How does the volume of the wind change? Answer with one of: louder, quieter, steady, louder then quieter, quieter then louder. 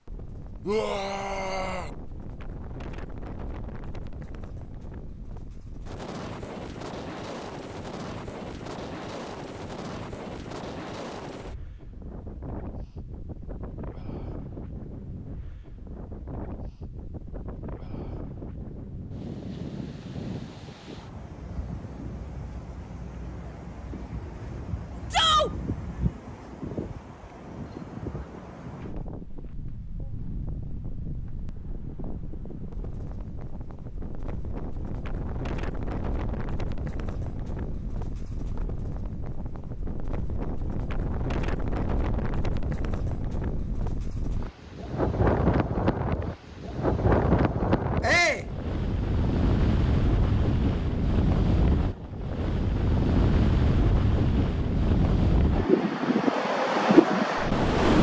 louder.